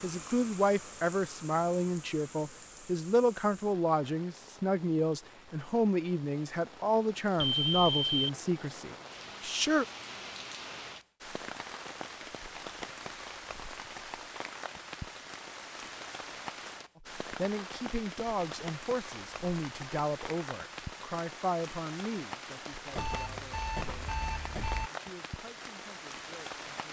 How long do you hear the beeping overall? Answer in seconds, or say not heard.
3 s.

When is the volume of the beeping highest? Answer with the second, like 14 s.
8 s.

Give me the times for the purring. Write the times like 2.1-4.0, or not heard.
not heard.